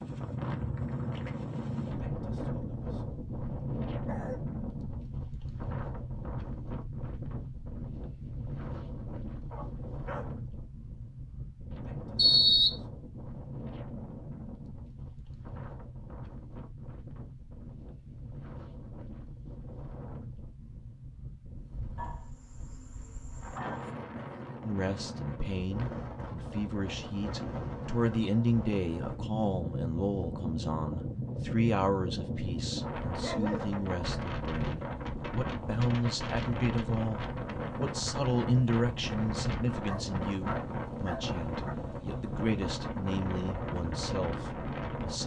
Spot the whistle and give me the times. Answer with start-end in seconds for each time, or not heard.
12.2-12.8.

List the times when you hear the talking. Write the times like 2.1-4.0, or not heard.
24.6-45.2.